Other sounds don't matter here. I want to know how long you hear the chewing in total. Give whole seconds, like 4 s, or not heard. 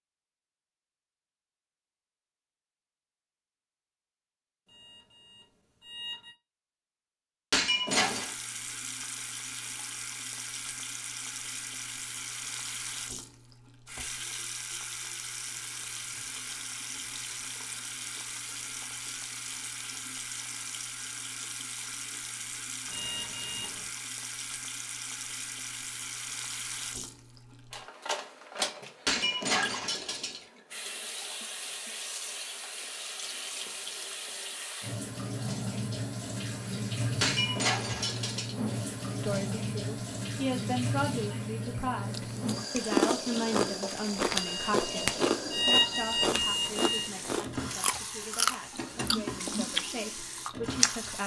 9 s.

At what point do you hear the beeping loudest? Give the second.
46 s.